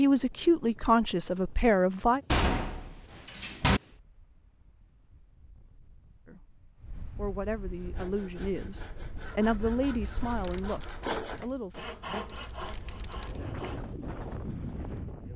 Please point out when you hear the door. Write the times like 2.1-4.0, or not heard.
2.3-3.8, 10.2-11.5.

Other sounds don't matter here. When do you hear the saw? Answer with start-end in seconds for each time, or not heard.
7.8-13.9.